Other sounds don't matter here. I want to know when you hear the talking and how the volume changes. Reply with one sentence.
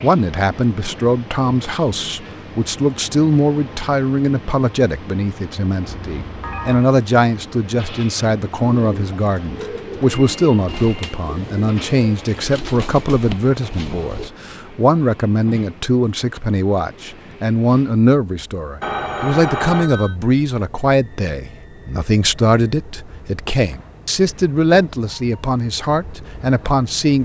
The talking can be heard from 0.0 to 27.2 s, at a steady volume.